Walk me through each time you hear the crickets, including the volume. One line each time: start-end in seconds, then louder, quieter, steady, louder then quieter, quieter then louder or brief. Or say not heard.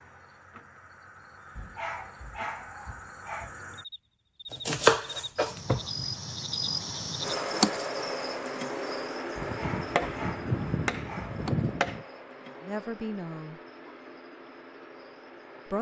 0.0-15.7 louder then quieter.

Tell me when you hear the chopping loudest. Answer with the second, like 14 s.
5 s.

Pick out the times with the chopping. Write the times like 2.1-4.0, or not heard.
4.5-6.0, 9.3-12.1.